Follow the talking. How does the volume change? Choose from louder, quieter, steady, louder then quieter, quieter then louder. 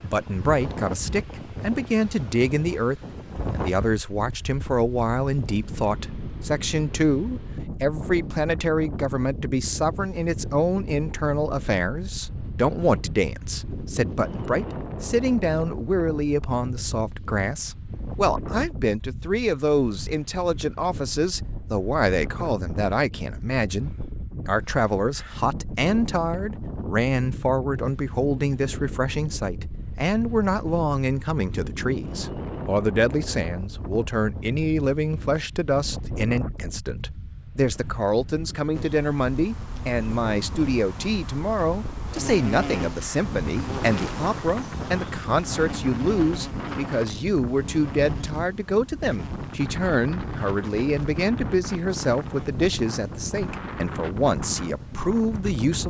steady.